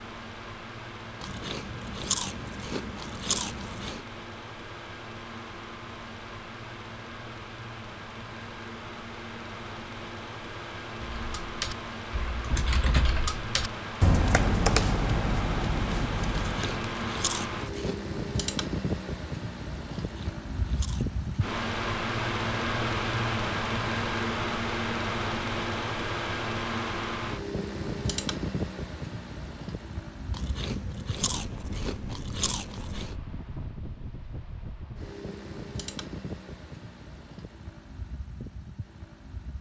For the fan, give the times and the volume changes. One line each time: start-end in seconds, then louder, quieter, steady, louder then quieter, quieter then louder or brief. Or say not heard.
0.0-39.5 louder then quieter.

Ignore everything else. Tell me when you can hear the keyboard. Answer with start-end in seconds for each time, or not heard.
11.2-16.8.